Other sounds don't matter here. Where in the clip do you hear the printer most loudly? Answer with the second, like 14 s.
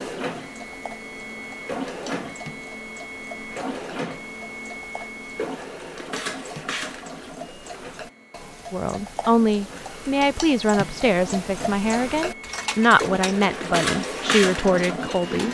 14 s.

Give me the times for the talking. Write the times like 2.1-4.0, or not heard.
8.7-15.4.